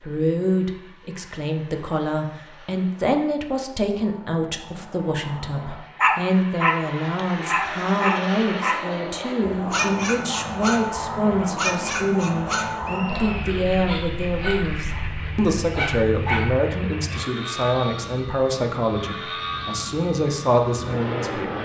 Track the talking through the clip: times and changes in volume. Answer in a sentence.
The talking can be heard from 0.0 to 21.5 s, at a steady volume.